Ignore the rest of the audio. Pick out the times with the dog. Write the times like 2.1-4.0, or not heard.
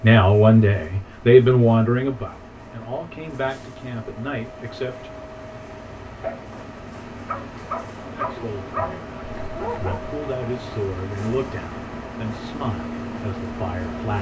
6.0-10.0.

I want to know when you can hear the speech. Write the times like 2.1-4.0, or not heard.
0.0-5.1, 8.2-14.1.